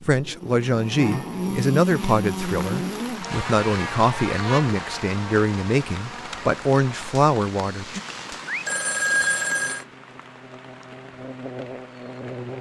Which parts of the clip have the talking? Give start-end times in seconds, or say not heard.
0.0-8.0.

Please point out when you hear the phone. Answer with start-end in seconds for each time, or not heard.
8.4-9.8.